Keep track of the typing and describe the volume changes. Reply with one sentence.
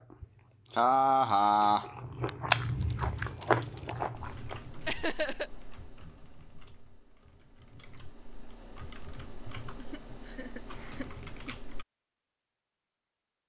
The volume of the typing goes down, then up.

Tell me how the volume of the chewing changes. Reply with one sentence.
The loudness of the chewing goes up, then down.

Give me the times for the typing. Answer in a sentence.
The typing can be heard from 2.6 to 11.8 s.